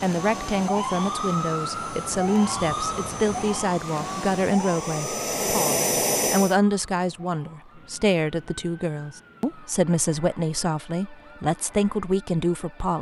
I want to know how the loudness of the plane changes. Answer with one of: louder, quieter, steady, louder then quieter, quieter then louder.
louder.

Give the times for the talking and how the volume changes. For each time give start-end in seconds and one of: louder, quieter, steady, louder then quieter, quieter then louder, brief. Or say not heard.
0.0-12.9 steady.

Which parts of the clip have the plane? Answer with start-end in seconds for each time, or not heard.
0.0-6.5.